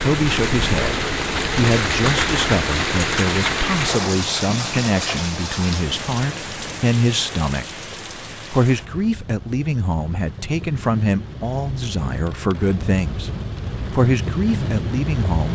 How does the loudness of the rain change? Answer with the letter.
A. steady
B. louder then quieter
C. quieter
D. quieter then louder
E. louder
D.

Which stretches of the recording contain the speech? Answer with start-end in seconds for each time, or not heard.
0.0-7.7, 8.5-13.3, 13.9-15.5.